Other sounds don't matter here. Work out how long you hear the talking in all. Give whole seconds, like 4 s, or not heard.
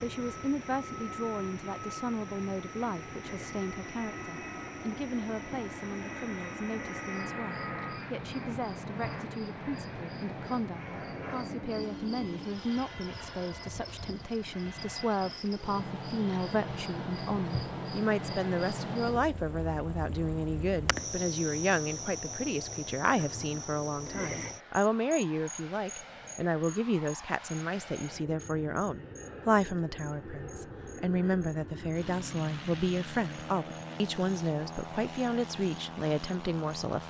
37 s.